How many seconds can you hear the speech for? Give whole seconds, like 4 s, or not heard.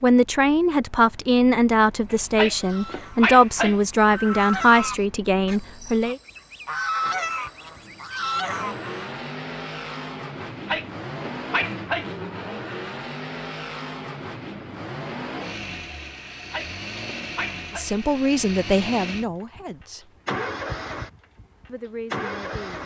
10 s.